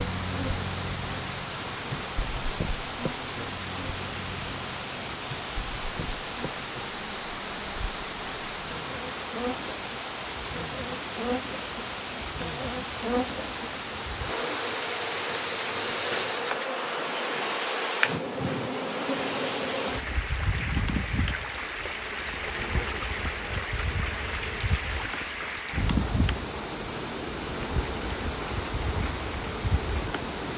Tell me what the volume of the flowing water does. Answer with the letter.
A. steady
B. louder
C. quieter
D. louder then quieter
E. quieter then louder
A.